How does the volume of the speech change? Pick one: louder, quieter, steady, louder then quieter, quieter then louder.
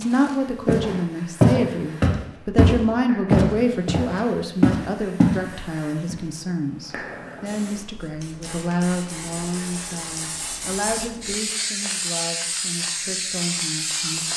quieter.